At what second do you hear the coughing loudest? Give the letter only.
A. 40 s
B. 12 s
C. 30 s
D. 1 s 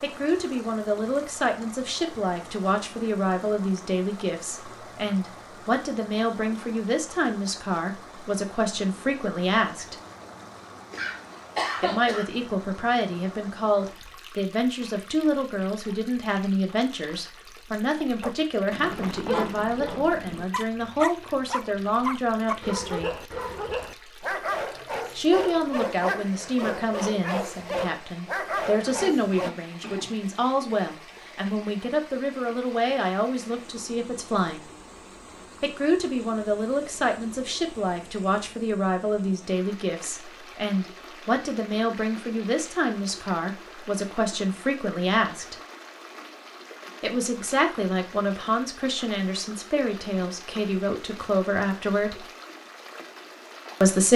B.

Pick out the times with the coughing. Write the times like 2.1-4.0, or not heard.
10.9-12.2, 28.9-30.2.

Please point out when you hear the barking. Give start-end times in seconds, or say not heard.
18.2-29.5.